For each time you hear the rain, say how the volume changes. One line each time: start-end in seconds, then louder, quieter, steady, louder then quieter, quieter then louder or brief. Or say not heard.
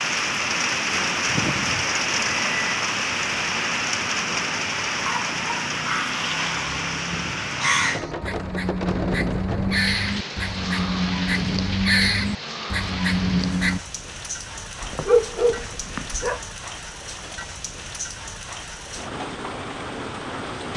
0.0-20.7 quieter.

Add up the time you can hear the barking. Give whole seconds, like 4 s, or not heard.
3 s.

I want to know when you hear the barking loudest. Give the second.
15 s.